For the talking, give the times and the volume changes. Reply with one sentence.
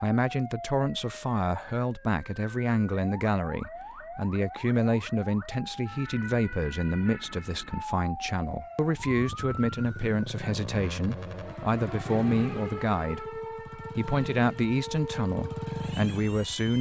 The talking can be heard from 0.0 to 16.7 s, at a steady volume.